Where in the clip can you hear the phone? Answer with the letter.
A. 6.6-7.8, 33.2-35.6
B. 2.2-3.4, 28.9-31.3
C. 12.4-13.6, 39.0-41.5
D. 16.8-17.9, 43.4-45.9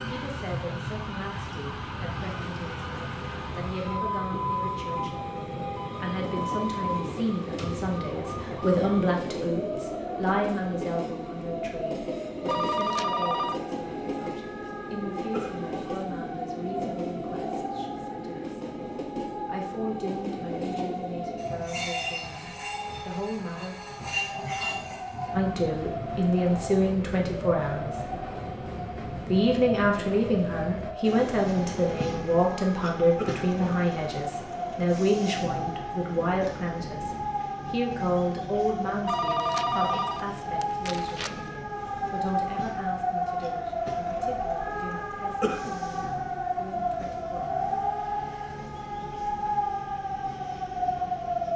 C.